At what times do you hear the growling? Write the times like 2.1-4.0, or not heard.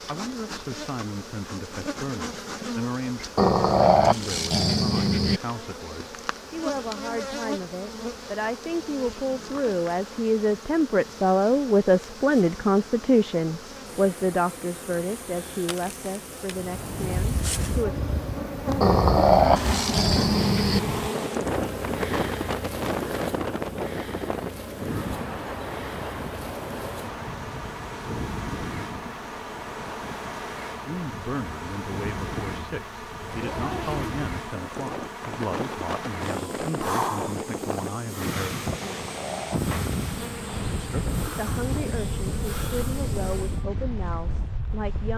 3.4-5.4, 18.8-20.8, 38.8-40.7.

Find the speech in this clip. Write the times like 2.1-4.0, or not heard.
0.0-18.0, 30.8-38.5, 40.8-45.1.